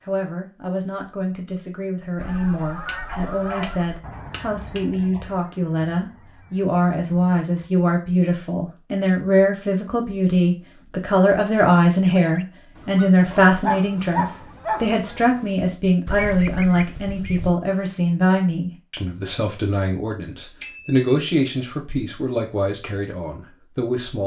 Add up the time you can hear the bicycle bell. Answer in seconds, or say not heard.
3 s.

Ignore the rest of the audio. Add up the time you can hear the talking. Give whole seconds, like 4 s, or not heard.
24 s.